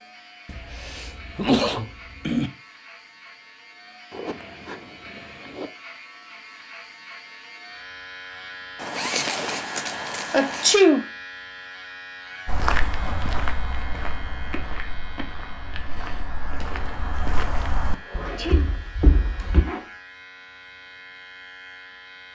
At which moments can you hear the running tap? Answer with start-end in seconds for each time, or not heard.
not heard.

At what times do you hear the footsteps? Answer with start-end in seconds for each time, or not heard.
12.4-19.6.